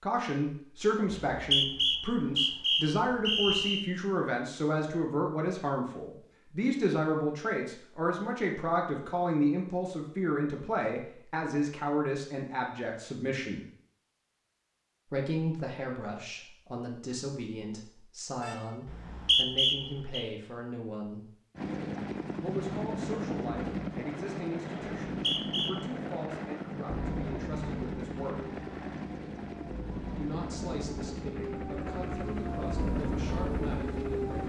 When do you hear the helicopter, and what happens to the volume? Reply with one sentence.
You can hear the helicopter from 21.6 to 34.4 s, getting quieter.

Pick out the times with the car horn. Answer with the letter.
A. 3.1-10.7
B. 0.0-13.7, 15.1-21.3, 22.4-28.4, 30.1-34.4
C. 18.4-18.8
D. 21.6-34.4
C.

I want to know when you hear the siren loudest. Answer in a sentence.
The loudest moment of the siren is at 33 seconds.